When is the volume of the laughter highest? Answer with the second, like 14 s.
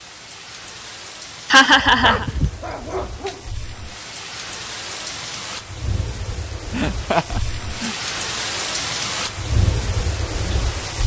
2 s.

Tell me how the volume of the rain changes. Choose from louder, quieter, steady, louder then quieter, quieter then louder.
louder.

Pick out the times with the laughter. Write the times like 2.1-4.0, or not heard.
1.5-2.2, 6.7-8.0.